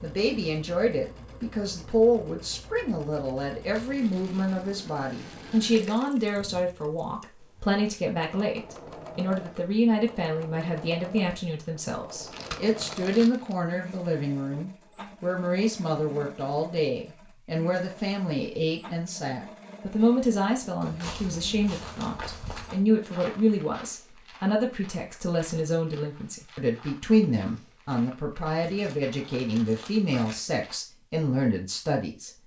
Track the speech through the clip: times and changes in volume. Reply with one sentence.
You can hear the speech from 0.0 to 32.3 s, at a steady volume.